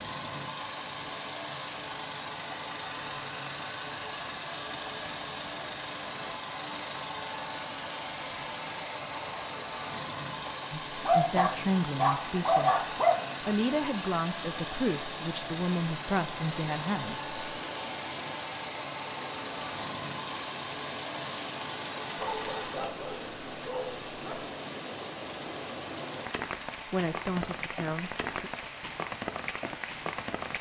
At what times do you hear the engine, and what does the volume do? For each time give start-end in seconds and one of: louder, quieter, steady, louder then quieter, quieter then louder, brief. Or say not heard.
0.0-30.5 quieter.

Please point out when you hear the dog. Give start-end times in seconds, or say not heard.
11.0-13.2, 22.1-24.4.